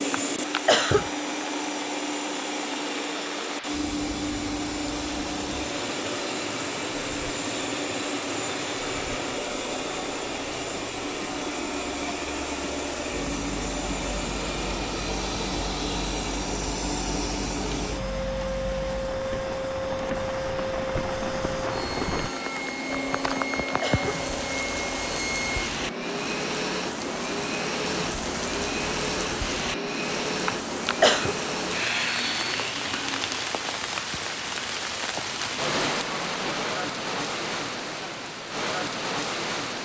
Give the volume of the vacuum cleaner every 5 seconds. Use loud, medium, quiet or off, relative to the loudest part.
loud, loud, loud, loud, loud, loud, loud, off.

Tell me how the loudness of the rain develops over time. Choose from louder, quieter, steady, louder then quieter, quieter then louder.
louder.